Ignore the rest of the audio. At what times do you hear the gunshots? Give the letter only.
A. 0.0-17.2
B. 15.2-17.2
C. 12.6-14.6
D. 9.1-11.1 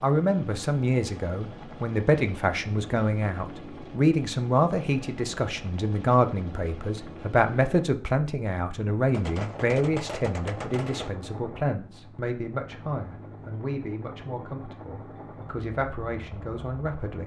D.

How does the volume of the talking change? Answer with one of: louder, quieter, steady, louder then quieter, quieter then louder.
quieter.